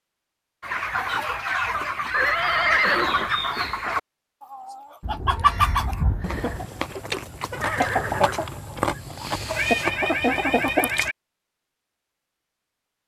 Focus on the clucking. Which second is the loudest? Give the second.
6 s.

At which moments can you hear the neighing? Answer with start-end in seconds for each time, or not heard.
2.1-3.4, 7.6-9.0.